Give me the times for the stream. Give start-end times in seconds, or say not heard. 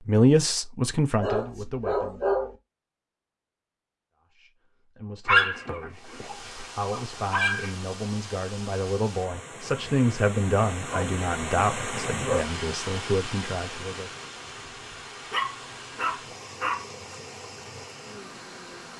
5.9-18.9.